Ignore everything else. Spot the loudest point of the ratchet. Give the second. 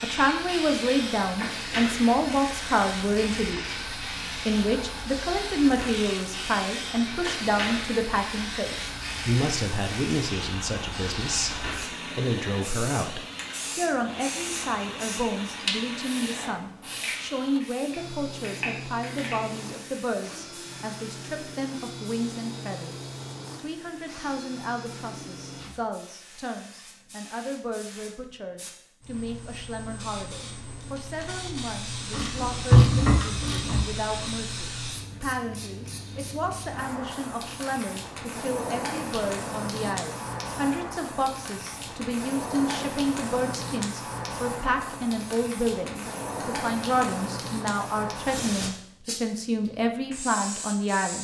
33 s.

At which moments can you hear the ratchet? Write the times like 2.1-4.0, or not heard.
32.1-34.4.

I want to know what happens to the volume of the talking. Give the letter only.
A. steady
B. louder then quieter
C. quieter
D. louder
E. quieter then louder
E.